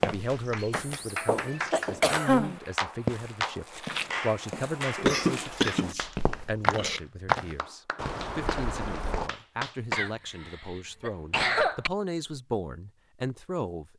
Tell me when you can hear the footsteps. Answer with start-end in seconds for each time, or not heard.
0.0-9.3.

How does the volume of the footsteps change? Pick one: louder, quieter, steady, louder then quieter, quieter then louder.
louder.